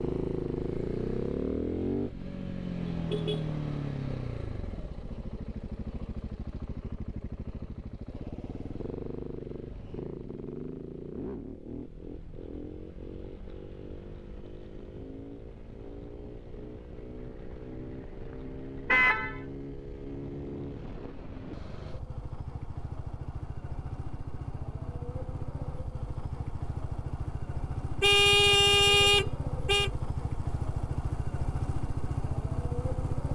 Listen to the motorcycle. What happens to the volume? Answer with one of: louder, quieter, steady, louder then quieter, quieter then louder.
quieter then louder.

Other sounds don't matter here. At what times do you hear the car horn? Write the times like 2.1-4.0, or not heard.
2.9-3.5, 17.2-19.4, 28.0-29.9.